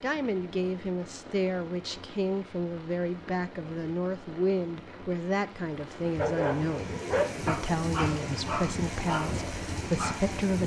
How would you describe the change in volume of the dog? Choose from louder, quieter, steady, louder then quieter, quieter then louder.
quieter.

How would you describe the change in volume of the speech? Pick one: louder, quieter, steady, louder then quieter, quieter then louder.
steady.